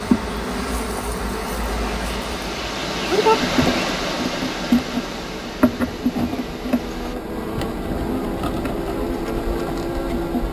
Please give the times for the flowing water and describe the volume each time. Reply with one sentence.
The flowing water can be heard from 0.0 to 7.2 s, getting louder then quieter.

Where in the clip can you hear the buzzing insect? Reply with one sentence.
The buzzing insect can be heard from 0.0 to 10.4 s.